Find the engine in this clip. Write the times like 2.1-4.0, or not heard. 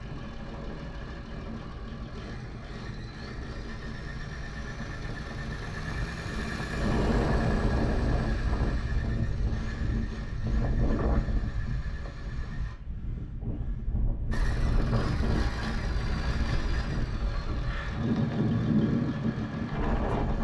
0.0-12.8, 14.3-20.3.